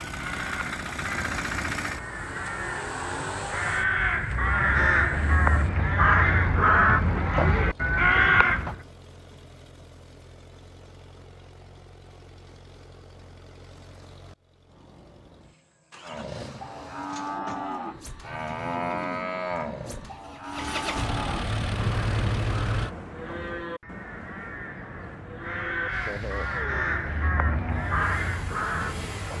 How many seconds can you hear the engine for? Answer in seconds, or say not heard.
26 s.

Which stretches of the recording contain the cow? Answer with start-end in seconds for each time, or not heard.
16.0-26.5, 27.4-28.0.